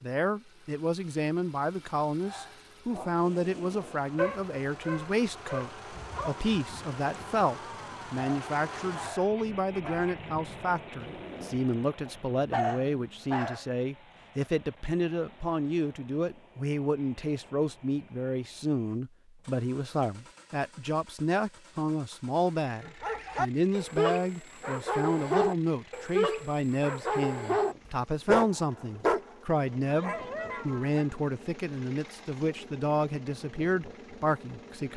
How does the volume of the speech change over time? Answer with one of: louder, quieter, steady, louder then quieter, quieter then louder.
steady.